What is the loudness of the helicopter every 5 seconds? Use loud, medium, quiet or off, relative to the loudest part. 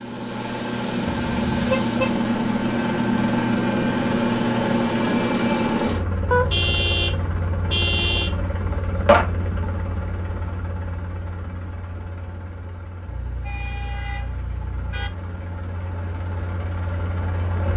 loud, loud, quiet, quiet.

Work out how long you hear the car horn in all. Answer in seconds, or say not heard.
5 s.